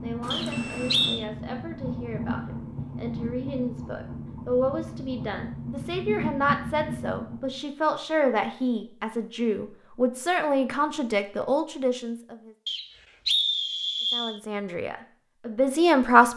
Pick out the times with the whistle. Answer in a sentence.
The whistle can be heard from 0.3 to 1.2 s and from 12.7 to 14.4 s.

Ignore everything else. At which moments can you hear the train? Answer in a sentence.
You can hear the train from 0.0 to 7.7 s.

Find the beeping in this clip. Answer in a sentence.
The beeping can be heard from 0.2 to 1.2 s.